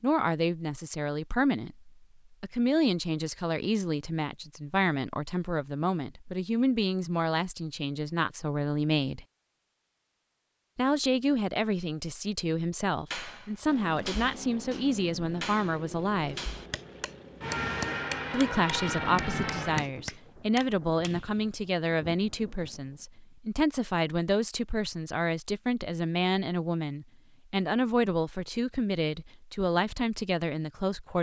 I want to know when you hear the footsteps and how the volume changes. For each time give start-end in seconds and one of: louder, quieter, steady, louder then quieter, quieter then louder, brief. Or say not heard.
not heard.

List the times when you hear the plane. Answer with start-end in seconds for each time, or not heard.
13.7-19.9.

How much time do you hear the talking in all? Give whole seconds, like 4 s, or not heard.
28 s.